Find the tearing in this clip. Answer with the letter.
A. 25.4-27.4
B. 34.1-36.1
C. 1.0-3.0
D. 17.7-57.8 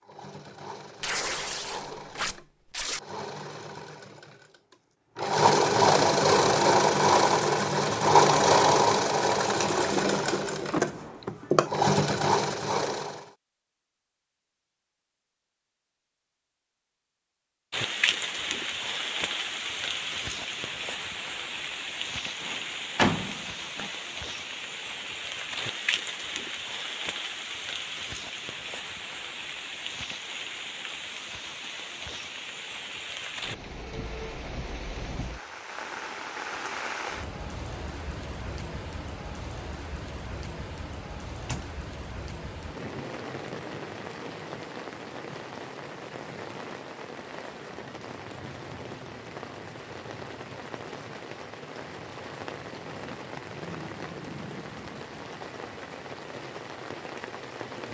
C.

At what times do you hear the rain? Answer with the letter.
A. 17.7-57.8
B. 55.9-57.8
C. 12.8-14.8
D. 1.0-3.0
A.